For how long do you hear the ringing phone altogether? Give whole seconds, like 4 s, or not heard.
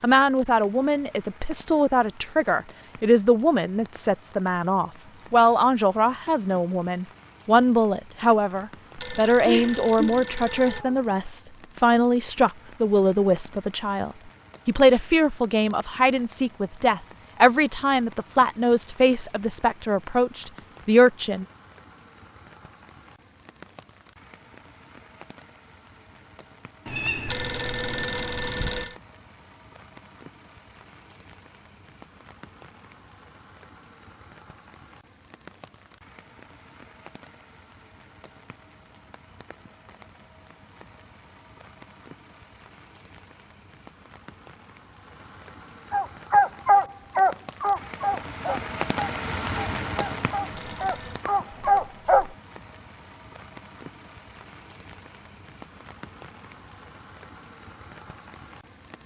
4 s.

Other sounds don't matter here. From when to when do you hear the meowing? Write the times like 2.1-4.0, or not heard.
9.4-10.9, 26.9-28.9, 51.5-52.3.